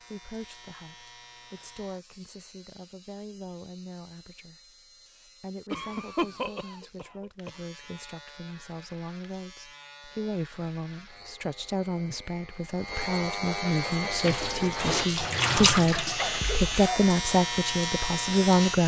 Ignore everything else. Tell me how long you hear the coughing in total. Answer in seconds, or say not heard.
3 s.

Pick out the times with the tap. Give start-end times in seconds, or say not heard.
13.9-16.9.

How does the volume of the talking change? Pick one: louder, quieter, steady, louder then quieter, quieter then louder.
louder.